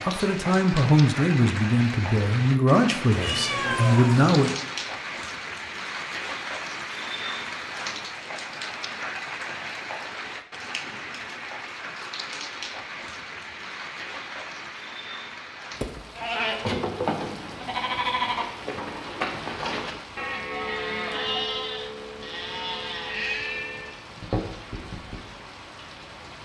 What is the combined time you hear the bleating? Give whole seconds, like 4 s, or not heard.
9 s.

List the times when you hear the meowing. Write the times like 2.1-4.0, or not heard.
3.1-4.3.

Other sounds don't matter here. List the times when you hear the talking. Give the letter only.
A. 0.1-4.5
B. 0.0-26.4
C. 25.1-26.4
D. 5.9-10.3
A.